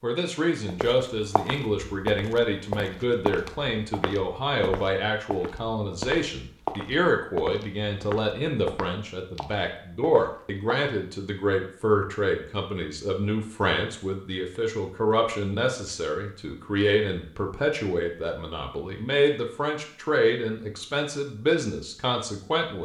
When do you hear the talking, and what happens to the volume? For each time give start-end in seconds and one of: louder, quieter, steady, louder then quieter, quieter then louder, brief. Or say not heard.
0.0-22.7 steady.